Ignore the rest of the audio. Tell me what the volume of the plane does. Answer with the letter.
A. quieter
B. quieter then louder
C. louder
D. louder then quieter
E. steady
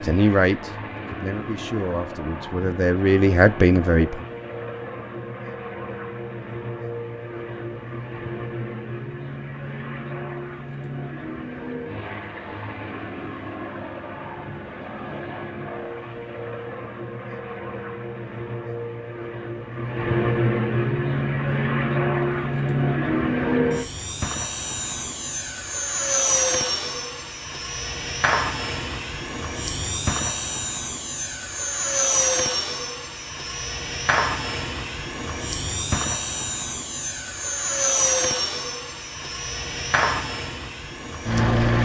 C.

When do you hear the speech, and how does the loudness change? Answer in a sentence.
You can hear the speech from 0.0 to 4.2 s, getting quieter then louder.